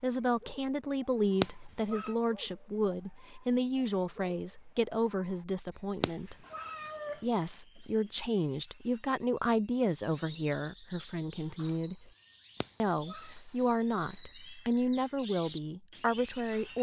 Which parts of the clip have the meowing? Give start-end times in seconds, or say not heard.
1.4-2.1, 6.0-7.2, 12.6-13.3.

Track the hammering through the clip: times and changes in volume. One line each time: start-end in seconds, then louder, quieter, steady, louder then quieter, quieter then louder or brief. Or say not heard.
not heard.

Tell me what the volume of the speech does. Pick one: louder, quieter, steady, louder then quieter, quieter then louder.
steady.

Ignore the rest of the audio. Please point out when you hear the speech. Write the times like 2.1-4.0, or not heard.
0.0-6.3, 7.2-12.1, 12.8-16.7.